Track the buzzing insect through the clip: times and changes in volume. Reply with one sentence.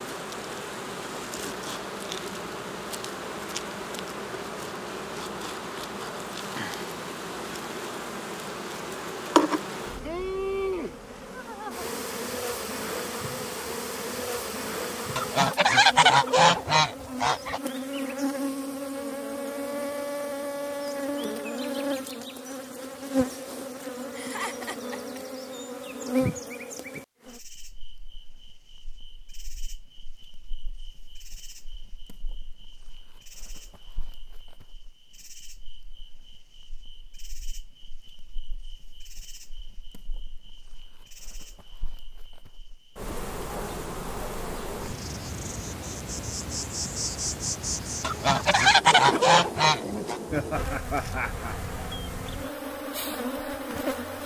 You can hear the buzzing insect from 0.0 to 54.2 s, getting quieter then louder.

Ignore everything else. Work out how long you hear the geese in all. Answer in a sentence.
The geese can be heard for 5 seconds in total.